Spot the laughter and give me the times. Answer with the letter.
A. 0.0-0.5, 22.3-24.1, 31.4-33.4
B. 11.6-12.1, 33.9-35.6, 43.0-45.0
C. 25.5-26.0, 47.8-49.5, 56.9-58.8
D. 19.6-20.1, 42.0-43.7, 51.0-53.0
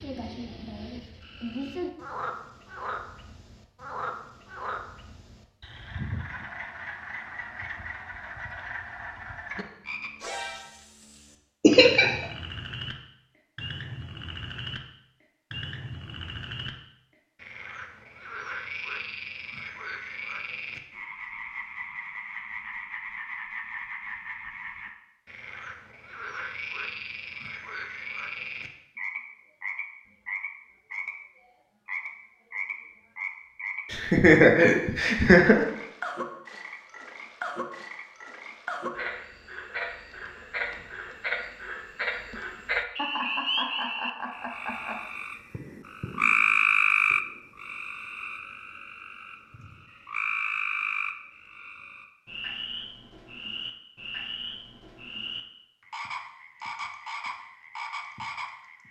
B.